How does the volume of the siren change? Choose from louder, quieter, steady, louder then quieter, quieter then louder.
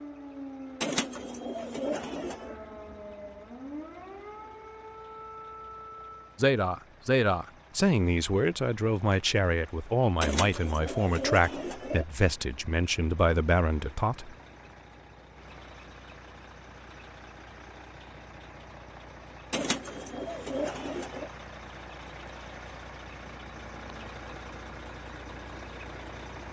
steady.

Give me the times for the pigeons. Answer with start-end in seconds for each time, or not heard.
0.8-2.5, 10.2-12.1, 19.5-21.3.